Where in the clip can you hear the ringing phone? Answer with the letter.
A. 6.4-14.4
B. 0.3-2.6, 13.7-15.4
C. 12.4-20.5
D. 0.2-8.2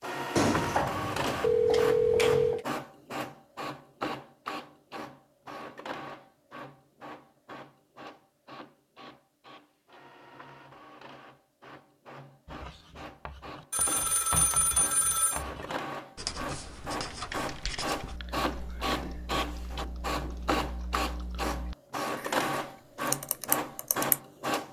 B.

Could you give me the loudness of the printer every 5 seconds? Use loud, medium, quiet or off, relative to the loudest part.
loud, quiet, quiet, loud, loud.